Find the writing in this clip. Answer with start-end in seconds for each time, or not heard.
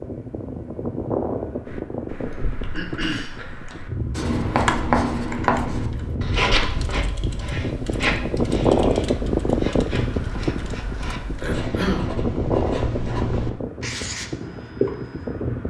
3.7-15.4.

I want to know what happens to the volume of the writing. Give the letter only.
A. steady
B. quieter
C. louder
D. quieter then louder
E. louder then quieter
D.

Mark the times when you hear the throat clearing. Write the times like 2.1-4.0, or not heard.
2.7-3.4, 11.4-12.2.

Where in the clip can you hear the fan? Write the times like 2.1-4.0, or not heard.
0.0-15.6.